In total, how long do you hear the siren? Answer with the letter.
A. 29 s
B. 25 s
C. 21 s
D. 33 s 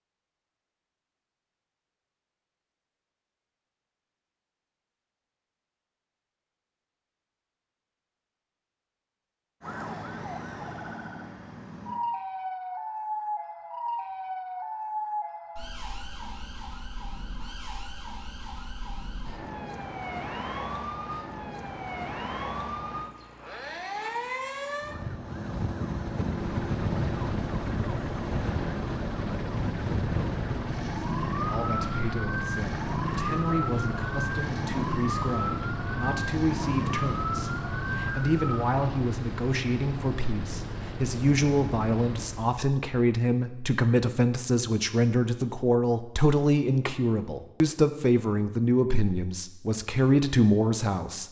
A.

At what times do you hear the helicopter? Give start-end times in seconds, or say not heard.
26.2-42.6.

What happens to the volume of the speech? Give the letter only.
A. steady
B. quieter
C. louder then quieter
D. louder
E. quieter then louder
D.